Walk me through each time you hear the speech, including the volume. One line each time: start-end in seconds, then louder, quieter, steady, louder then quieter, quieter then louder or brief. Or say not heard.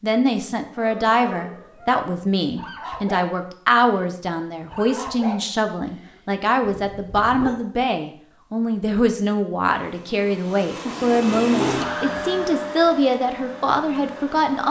0.0-14.6 steady.